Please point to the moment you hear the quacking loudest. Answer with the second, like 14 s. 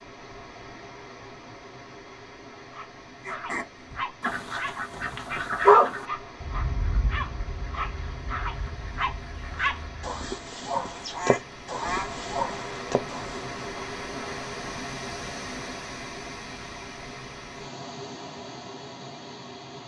6 s.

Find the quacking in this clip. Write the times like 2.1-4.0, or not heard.
3.2-12.1.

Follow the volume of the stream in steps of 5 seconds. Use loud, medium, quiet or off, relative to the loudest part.
medium, medium, loud, loud.